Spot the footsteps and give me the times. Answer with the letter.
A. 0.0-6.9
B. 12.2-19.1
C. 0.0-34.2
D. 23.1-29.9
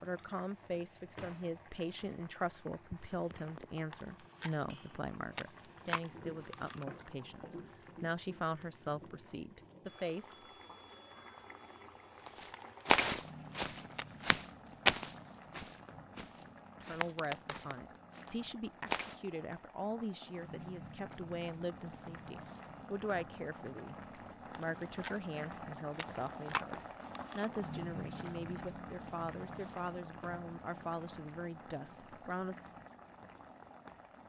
B.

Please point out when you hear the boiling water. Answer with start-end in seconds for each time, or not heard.
0.0-34.2.